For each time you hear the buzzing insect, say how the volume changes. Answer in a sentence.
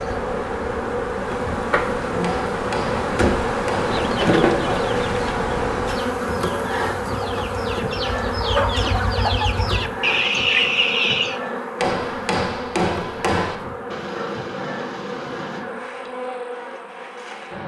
The buzzing insect can be heard from 0.0 to 17.6 s, getting quieter.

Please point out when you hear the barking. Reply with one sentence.
The barking can be heard from 13.9 to 15.7 s.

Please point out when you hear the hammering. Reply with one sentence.
You can hear the hammering from 2.2 to 4.0 s and from 11.8 to 13.6 s.